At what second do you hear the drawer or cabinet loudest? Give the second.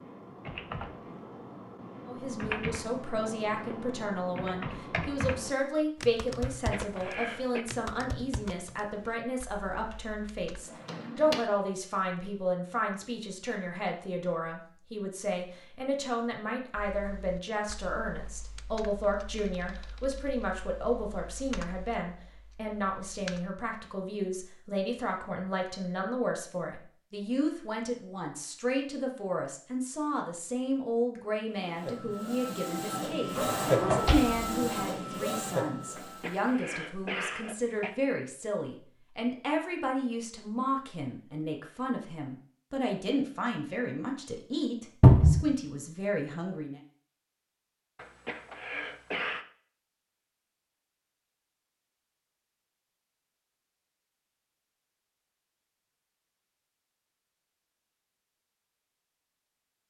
45 s.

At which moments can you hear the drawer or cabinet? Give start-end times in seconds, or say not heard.
10.7-11.3, 33.4-34.8, 45.0-45.5.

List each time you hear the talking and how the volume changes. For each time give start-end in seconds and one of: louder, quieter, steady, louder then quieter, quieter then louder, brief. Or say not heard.
2.0-46.8 steady.